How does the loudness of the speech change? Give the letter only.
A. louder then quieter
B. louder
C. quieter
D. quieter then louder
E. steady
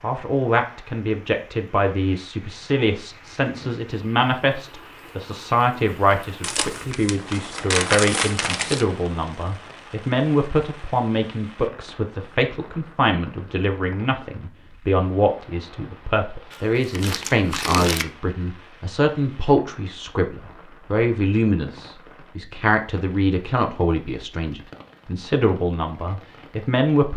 E.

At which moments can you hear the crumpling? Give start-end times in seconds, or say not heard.
6.4-8.8, 16.5-18.1.